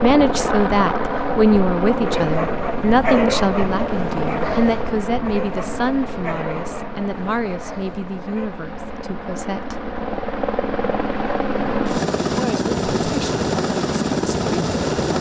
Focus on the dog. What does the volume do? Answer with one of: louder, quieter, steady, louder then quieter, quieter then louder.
quieter.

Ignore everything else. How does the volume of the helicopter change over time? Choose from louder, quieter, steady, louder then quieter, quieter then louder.
quieter then louder.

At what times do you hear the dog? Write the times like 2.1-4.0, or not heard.
2.0-8.5.